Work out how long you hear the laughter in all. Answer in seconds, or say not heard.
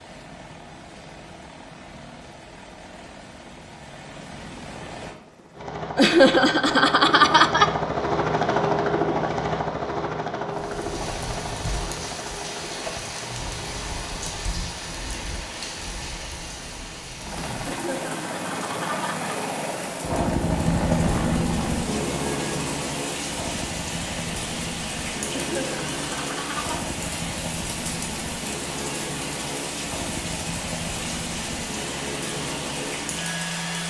5 s.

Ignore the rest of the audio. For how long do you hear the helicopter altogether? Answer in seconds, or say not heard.
31 s.